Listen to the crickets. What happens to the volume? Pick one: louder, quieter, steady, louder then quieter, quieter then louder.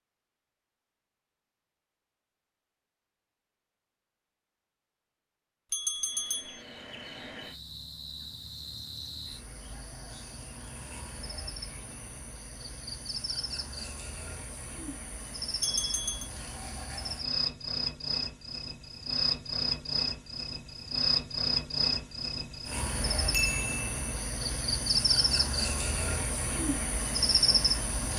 louder.